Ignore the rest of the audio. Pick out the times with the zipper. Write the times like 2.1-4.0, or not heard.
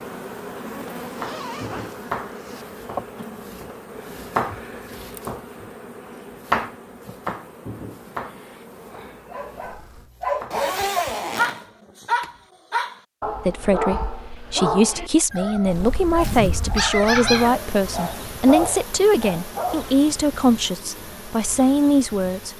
0.8-2.6, 10.5-11.7, 16.0-16.9.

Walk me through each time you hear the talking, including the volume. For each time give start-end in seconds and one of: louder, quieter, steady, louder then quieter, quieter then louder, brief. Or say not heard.
13.4-22.5 steady.